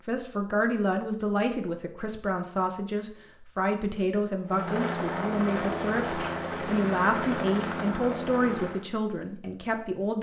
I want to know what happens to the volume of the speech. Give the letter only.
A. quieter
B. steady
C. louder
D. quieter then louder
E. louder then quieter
B.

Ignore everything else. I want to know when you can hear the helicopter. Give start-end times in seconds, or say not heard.
4.5-8.8.